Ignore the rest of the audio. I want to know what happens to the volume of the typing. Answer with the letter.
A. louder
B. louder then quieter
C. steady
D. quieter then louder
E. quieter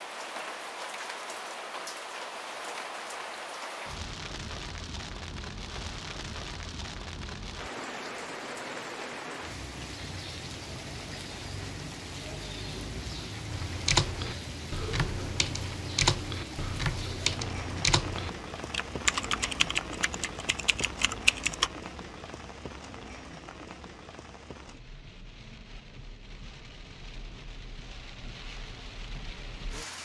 C.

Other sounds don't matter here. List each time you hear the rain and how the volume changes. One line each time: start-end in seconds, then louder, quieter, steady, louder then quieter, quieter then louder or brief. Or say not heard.
0.0-29.9 quieter.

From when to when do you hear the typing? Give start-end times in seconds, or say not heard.
13.5-21.7.